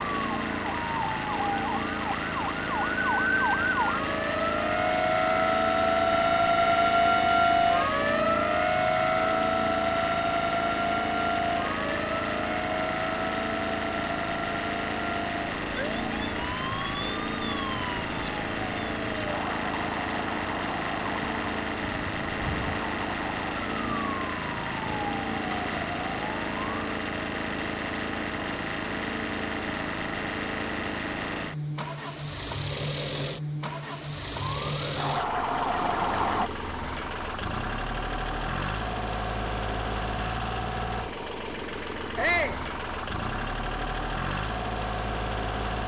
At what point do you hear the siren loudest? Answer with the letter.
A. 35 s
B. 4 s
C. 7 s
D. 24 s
C.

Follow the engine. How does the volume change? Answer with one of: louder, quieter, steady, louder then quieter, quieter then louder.
steady.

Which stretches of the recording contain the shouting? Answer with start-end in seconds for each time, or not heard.
42.1-42.6.